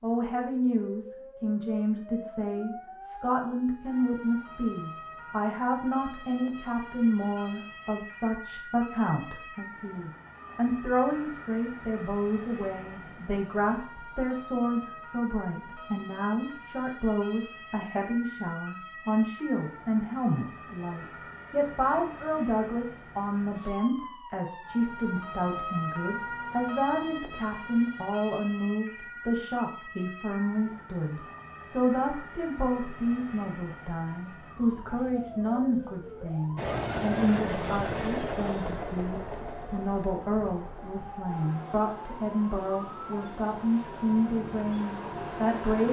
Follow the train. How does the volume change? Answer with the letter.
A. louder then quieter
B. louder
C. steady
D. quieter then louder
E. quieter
D.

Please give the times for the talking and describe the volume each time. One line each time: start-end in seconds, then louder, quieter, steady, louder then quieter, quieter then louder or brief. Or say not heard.
0.0-45.8 steady.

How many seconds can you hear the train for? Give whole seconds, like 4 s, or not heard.
9 s.